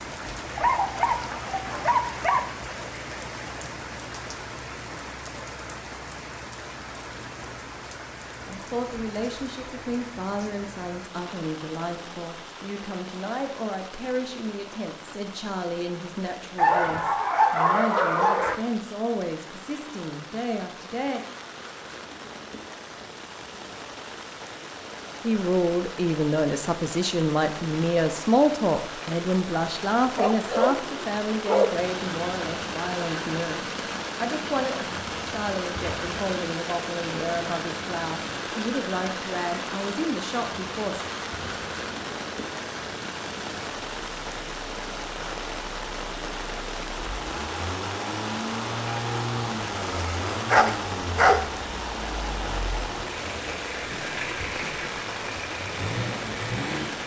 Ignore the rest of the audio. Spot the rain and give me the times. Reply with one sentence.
You can hear the rain from 0.0 to 57.0 s.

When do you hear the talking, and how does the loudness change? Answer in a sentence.
You can hear the talking from 8.4 to 21.2 s, at a steady volume; and from 25.2 to 41.0 s, getting quieter.